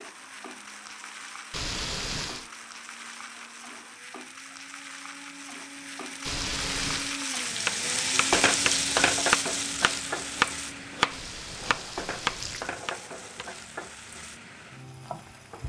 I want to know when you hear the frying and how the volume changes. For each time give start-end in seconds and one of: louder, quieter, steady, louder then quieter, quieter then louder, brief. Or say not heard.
0.0-15.6 louder then quieter.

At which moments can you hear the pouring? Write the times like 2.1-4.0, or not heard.
1.5-2.5, 6.2-7.2, 11.1-12.8.